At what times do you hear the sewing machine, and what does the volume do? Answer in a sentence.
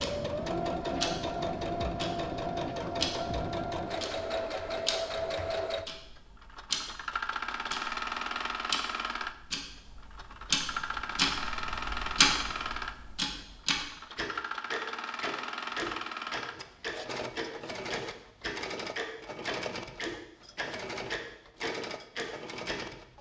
The sewing machine can be heard from 0.0 to 23.1 s, getting quieter.